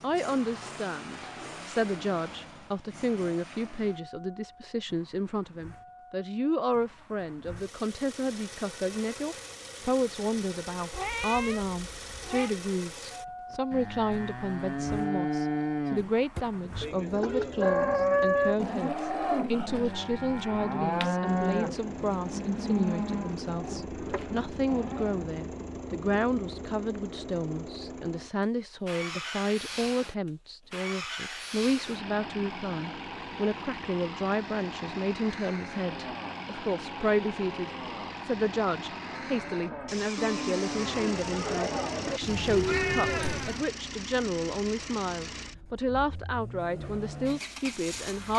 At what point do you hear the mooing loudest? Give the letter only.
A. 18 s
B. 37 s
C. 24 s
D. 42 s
A.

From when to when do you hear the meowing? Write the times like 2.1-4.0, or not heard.
10.9-12.5, 17.2-18.6, 42.2-43.6.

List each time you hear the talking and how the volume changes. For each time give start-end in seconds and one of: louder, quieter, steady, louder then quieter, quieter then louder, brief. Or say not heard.
0.0-48.3 steady.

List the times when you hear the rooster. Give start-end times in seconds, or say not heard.
not heard.